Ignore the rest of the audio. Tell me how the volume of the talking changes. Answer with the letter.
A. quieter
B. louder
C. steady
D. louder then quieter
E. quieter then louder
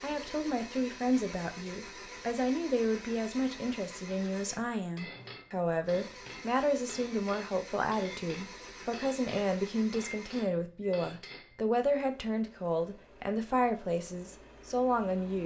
C.